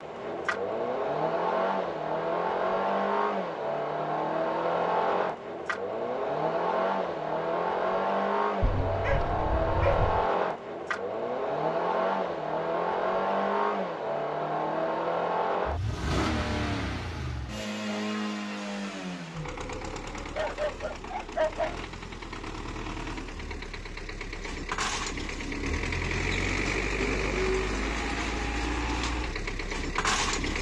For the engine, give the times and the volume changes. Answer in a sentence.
The engine can be heard from 0.0 to 30.5 s, getting quieter then louder.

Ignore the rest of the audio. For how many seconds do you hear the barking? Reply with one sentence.
The barking can be heard for 3 seconds in total.